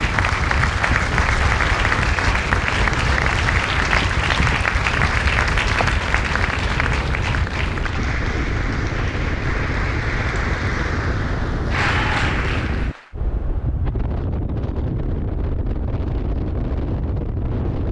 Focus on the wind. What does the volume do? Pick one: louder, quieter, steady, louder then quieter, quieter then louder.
steady.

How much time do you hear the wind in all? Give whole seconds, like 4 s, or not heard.
18 s.